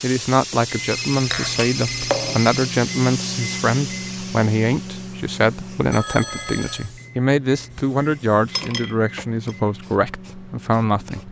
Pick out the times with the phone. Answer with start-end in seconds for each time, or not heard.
0.8-2.7, 5.9-6.9.